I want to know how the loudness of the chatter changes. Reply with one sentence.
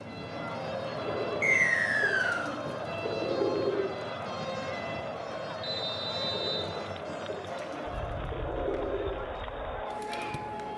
The loudness of the chatter stays about the same.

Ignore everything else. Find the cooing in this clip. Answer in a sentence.
The cooing can be heard from 0.9 to 3.9 s and from 6.2 to 9.2 s.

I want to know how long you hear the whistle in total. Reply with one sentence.
The whistle can be heard for 2 seconds in total.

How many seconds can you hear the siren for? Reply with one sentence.
The siren can be heard for 11 seconds in total.